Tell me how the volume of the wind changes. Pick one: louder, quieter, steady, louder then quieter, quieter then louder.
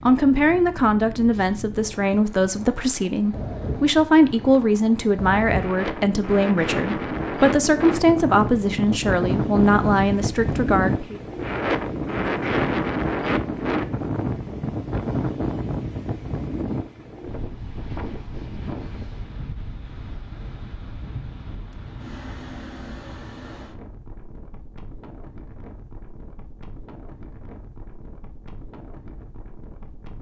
louder then quieter.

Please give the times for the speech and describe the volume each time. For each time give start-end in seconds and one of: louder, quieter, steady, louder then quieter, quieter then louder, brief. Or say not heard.
0.1-11.2 steady.